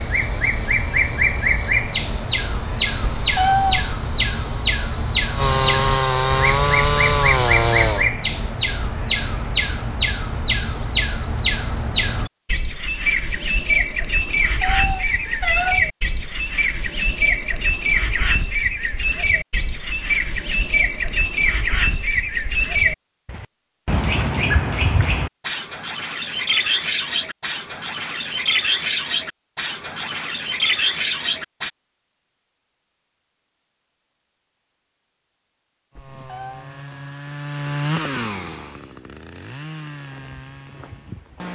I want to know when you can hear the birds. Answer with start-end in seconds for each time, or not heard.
0.0-31.7.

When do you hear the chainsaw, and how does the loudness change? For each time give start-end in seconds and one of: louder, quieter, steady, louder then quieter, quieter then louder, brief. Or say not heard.
0.0-8.1 louder
36.0-41.4 louder then quieter.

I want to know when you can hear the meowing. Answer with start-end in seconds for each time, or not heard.
3.0-4.0, 14.4-15.8, 36.0-36.6.